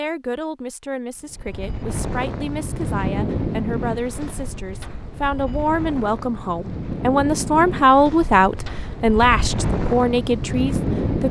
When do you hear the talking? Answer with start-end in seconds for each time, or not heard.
0.0-11.2.